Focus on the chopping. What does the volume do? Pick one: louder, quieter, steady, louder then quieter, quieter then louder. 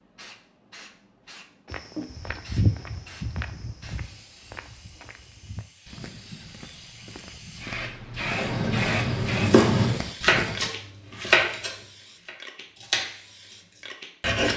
quieter.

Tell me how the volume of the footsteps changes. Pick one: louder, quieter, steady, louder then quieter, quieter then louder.
quieter then louder.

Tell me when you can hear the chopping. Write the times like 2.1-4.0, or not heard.
8.3-14.5.